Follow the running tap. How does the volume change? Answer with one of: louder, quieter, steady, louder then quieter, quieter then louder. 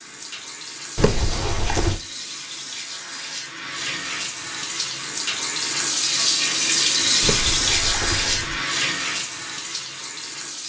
louder then quieter.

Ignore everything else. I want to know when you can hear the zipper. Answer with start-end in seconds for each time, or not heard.
0.9-2.0, 7.2-8.6.